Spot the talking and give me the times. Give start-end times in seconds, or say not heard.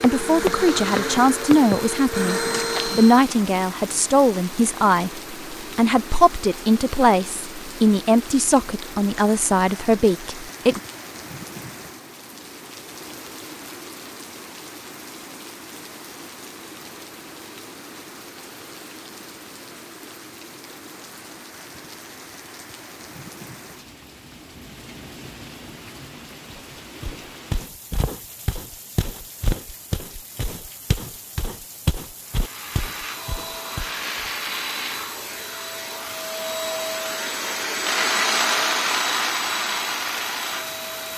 0.0-10.8.